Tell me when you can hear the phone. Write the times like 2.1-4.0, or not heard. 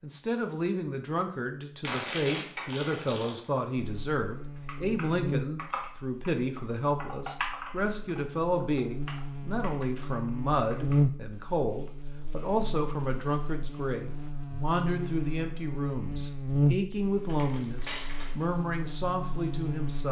not heard.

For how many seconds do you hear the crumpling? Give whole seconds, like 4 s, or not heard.
3 s.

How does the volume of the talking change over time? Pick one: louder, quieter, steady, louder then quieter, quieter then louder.
steady.